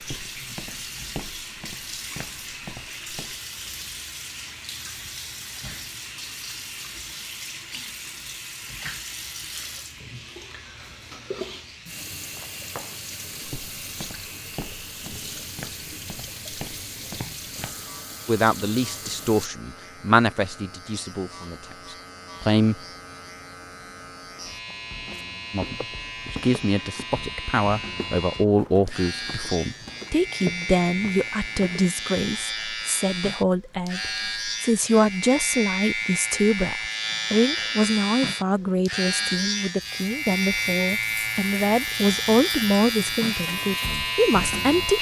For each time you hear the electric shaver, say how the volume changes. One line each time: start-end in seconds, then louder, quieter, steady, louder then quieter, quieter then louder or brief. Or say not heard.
0.0-44.9 louder.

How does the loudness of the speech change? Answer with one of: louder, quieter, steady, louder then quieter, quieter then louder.
steady.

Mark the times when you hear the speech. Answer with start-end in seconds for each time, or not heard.
18.2-22.8, 25.5-44.9.